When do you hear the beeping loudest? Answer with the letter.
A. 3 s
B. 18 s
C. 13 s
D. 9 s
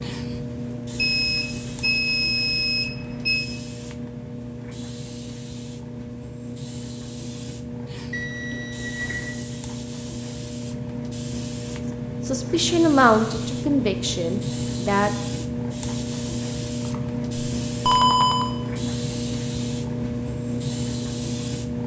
B.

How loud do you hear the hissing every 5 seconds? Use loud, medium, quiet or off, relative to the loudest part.
medium, medium, loud, loud, loud.